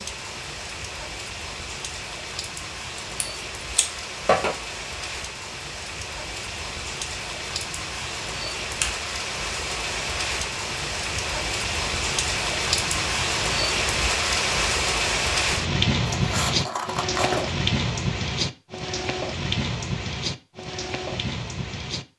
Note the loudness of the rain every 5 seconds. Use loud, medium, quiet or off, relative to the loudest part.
medium, medium, loud, loud, medium.